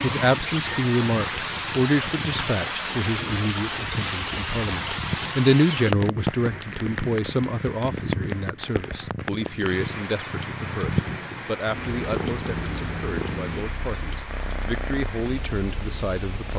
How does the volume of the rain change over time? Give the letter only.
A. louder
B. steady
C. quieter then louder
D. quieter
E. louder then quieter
D.